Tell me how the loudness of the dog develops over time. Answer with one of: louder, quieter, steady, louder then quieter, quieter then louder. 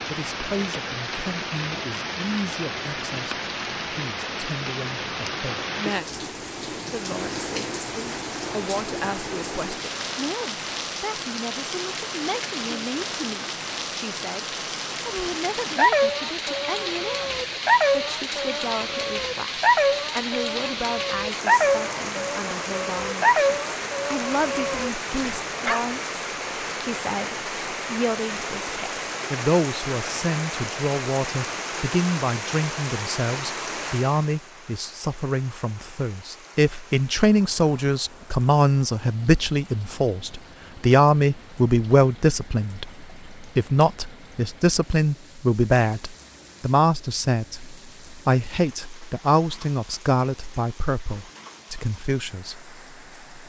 quieter.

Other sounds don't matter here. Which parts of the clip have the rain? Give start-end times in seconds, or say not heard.
0.0-53.4.